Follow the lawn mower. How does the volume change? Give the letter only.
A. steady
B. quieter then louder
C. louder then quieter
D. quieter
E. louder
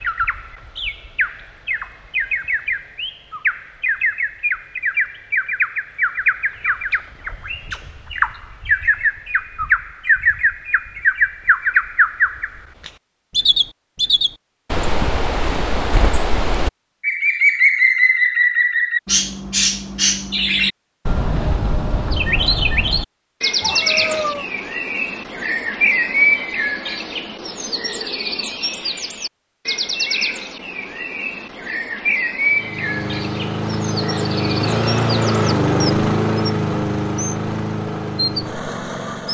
C.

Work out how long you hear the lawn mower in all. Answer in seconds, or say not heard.
7 s.